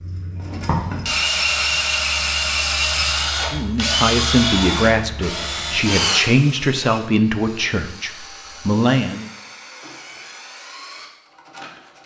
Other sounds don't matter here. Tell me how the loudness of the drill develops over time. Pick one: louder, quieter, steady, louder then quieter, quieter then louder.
quieter.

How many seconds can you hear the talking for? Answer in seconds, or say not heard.
6 s.